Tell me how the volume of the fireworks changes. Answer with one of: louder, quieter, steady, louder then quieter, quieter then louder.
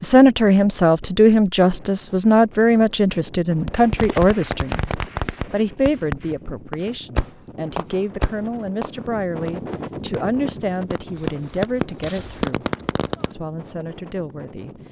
quieter then louder.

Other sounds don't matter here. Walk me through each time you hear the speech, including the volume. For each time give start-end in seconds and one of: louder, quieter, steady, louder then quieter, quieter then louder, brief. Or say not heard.
0.0-12.7 quieter
13.3-14.7 brief.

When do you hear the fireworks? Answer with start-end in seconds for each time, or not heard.
3.6-13.3.